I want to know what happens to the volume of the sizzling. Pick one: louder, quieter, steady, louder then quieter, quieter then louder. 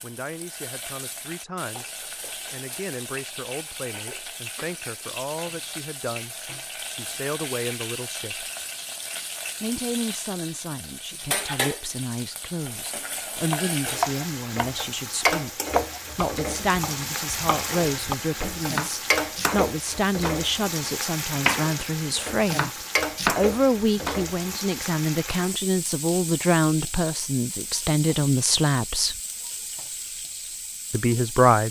louder then quieter.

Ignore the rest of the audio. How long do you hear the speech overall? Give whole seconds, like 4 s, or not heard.
28 s.